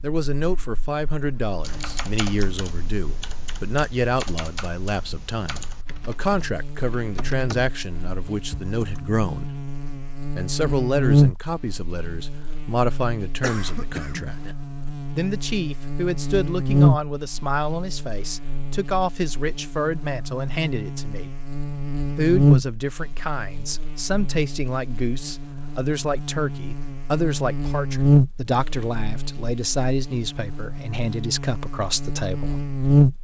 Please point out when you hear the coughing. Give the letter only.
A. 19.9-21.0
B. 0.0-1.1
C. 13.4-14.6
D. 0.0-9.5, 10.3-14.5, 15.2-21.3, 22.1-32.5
C.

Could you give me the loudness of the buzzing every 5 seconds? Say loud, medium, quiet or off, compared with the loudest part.
quiet, quiet, loud, loud, loud, loud, loud.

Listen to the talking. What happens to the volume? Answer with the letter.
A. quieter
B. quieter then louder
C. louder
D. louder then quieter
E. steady
E.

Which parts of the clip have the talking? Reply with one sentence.
The talking can be heard from 0.0 to 9.5 s, from 10.3 to 14.5 s, from 15.2 to 21.3 s and from 22.1 to 32.5 s.